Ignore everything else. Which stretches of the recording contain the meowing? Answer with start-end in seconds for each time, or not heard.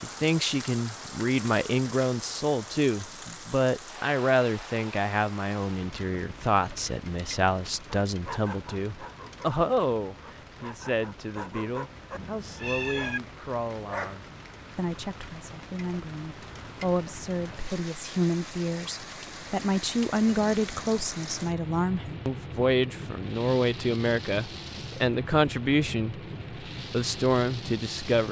12.1-13.2.